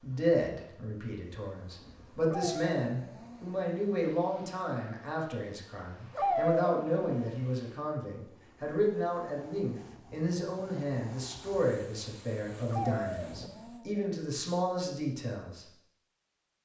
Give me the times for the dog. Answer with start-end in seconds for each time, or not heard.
2.2-3.5, 6.2-7.3, 12.7-13.9.